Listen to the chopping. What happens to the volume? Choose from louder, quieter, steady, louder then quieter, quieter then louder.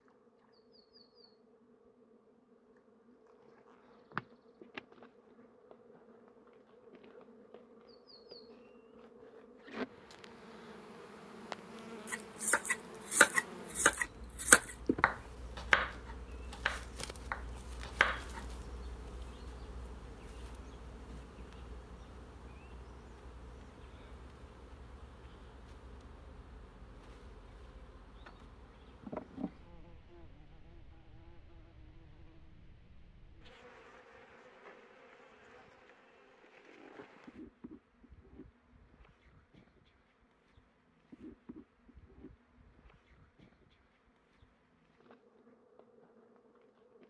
quieter.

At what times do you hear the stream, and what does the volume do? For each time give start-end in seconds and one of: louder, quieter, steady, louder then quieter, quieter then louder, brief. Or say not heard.
not heard.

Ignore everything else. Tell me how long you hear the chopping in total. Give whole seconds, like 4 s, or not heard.
6 s.